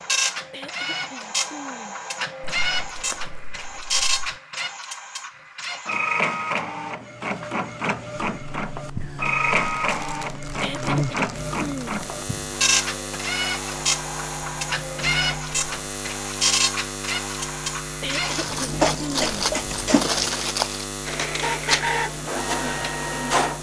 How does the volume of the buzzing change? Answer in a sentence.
The volume of the buzzing stays about the same.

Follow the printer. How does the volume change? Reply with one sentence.
The loudness of the printer stays about the same.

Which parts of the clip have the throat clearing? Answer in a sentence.
The throat clearing can be heard from 0.5 to 1.9 s, from 10.6 to 12.0 s and from 18.0 to 19.4 s.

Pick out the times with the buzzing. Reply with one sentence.
The buzzing can be heard from 8.3 to 23.5 s.